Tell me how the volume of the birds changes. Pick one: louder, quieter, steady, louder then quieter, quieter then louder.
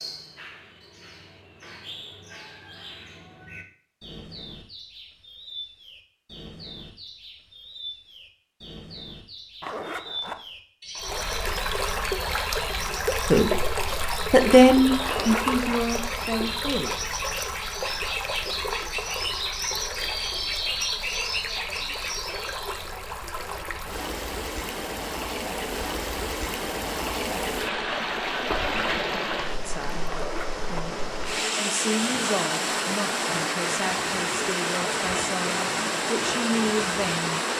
louder.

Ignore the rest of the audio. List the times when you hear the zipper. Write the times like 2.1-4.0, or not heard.
9.6-10.4, 15.0-15.8, 30.1-30.6.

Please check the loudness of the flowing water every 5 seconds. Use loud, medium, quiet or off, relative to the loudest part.
off, off, loud, medium, medium, loud, loud, loud.